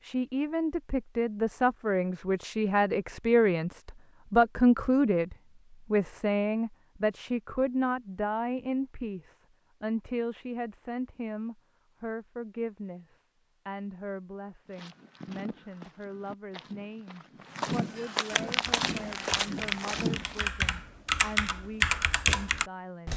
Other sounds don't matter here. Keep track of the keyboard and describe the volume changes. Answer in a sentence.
The volume of the keyboard goes up.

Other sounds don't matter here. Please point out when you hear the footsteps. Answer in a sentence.
The footsteps can be heard from 14.7 to 20.4 s.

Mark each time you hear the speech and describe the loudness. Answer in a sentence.
You can hear the speech from 0.0 to 23.1 s, getting quieter.